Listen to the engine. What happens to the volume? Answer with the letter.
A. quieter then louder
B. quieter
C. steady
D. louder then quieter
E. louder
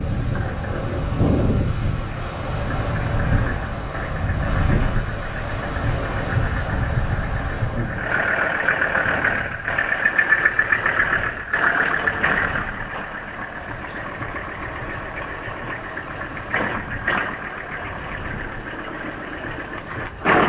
D.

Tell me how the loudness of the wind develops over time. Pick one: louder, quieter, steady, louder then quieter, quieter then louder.
quieter.